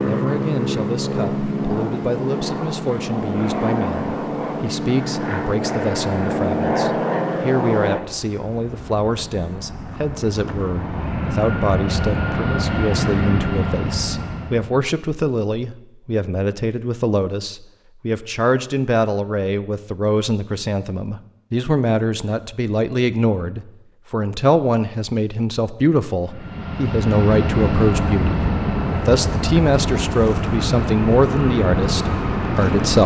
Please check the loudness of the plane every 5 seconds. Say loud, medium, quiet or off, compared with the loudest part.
loud, loud, loud, off, off, loud, loud.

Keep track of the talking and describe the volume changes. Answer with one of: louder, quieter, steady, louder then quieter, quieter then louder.
louder.